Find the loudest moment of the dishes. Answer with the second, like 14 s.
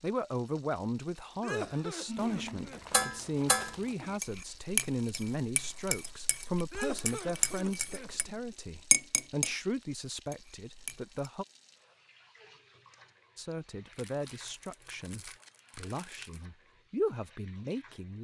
9 s.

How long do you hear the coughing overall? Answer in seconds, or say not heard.
4 s.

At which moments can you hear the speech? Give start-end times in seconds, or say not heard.
0.0-11.4, 13.3-18.1.